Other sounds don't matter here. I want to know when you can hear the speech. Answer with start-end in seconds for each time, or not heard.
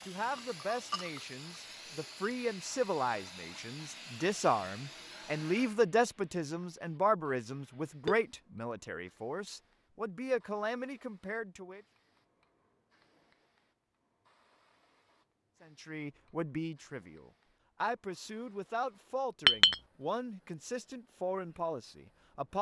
0.1-11.8, 15.6-22.5.